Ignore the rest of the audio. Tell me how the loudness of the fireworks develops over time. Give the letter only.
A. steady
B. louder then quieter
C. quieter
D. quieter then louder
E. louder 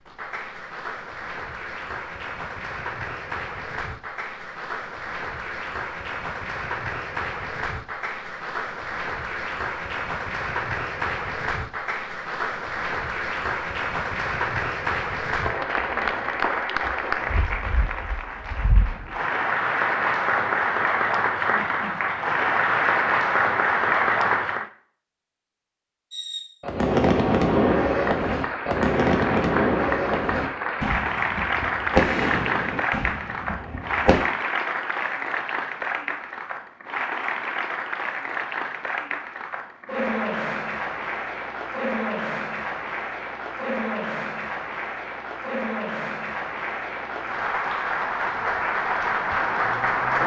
C.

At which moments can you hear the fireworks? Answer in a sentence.
You can hear the fireworks from 26.1 to 34.2 s.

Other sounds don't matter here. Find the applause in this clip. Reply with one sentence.
You can hear the applause from 0.0 to 24.7 s and from 27.8 to 50.2 s.